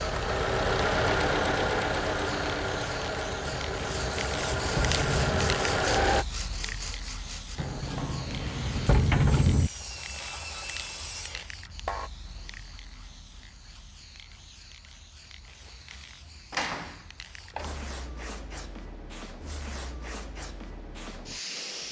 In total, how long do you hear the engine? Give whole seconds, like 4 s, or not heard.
6 s.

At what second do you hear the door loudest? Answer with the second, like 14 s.
9 s.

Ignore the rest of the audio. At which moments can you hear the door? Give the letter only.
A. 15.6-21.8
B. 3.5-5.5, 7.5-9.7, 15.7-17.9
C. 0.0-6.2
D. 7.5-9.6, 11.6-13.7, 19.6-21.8
B.